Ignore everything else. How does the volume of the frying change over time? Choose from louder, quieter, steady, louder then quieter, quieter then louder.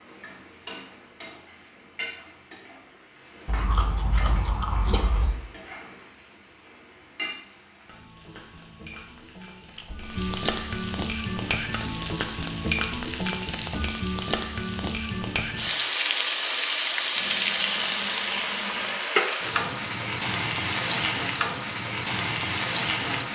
louder.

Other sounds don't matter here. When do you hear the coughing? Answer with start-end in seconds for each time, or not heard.
not heard.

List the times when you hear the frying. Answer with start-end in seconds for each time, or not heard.
0.0-23.2.